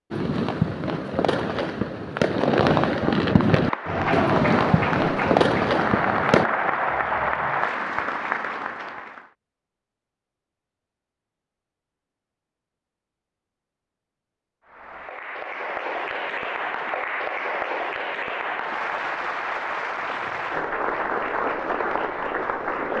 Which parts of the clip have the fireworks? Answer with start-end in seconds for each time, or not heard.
0.1-6.5.